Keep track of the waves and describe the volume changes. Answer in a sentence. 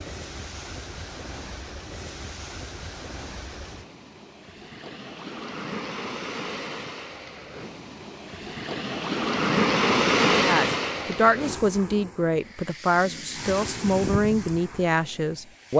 The loudness of the waves goes up, then down.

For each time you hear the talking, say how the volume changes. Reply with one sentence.
You can hear the talking from 10.4 to 15.7 s, at a steady volume.